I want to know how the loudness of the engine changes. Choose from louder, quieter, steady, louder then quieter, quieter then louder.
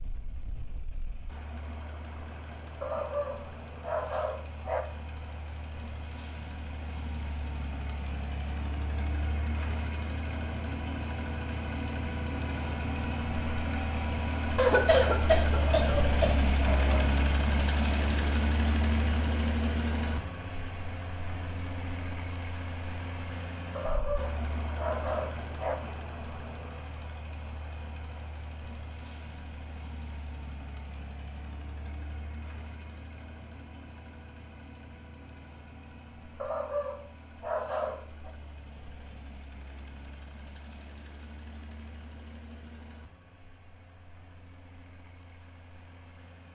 louder then quieter.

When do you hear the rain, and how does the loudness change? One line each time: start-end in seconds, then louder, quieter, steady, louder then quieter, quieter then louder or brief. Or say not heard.
not heard.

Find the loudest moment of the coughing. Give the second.
15 s.